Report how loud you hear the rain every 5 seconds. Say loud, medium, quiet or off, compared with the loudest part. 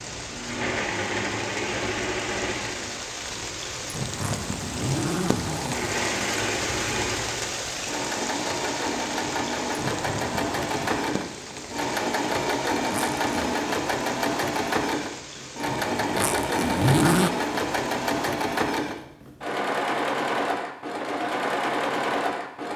loud, loud, medium, medium, off.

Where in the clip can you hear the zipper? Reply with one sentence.
The zipper can be heard from 4.1 to 5.9 s, from 12.8 to 13.6 s and from 16.1 to 17.3 s.